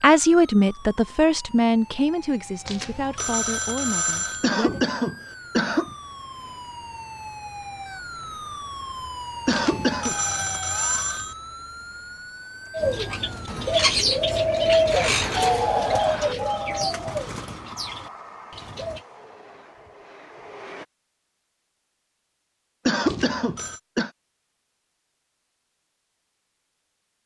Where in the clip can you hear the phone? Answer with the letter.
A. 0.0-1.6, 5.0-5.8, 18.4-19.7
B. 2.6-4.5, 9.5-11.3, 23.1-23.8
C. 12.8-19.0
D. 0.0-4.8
B.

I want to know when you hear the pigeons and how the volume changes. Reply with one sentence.
You can hear the pigeons from 12.8 to 19.0 s, getting quieter.